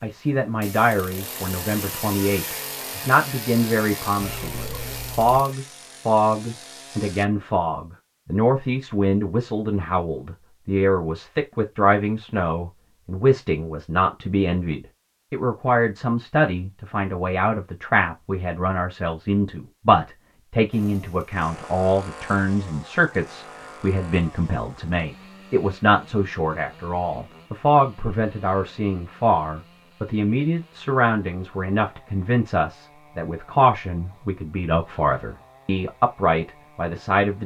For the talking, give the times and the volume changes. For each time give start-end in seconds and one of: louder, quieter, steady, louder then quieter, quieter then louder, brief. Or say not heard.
0.0-37.4 steady.